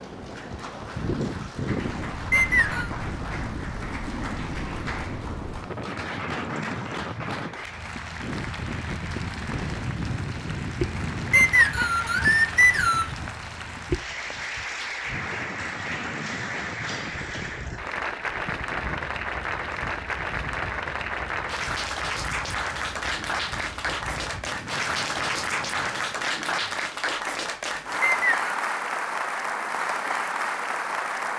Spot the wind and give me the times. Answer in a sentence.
The wind can be heard from 0.0 to 26.4 s.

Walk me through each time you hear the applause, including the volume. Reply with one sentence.
You can hear the applause from 0.0 to 31.3 s, getting louder.